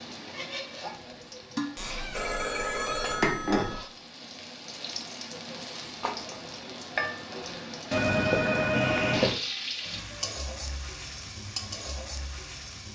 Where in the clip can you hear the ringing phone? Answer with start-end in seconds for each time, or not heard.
1.8-3.8, 7.9-9.3.